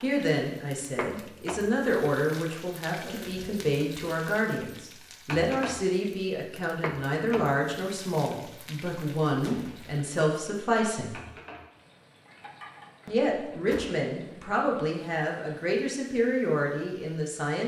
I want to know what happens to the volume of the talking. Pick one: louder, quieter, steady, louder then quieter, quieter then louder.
steady.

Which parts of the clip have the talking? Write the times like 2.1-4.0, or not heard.
0.0-11.2, 13.1-17.6.